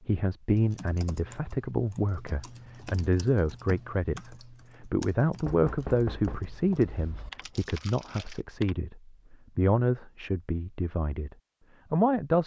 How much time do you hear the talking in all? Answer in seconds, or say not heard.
12 s.